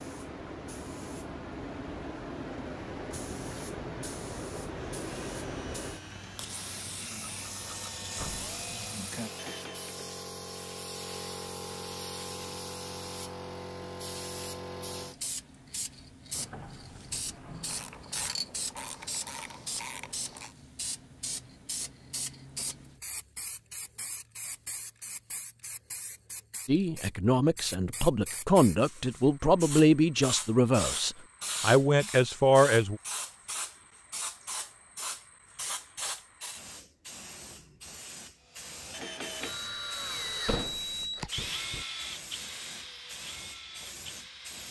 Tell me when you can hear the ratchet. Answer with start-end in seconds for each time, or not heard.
17.6-20.6.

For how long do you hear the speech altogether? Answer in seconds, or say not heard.
6 s.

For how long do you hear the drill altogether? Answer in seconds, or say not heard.
12 s.